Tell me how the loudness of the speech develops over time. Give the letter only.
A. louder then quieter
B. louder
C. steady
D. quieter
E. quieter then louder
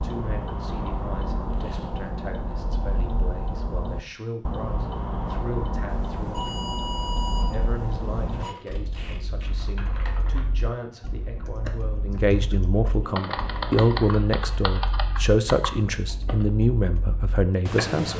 B.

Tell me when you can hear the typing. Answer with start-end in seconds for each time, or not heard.
9.4-16.5.